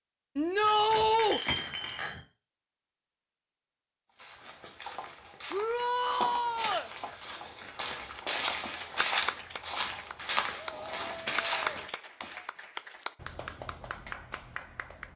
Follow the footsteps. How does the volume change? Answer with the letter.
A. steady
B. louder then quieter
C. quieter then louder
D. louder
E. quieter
D.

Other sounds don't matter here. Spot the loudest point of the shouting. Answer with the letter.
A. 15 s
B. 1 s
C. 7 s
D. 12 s
B.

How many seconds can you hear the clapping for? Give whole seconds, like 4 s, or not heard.
7 s.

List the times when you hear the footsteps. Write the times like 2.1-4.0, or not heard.
4.2-12.4.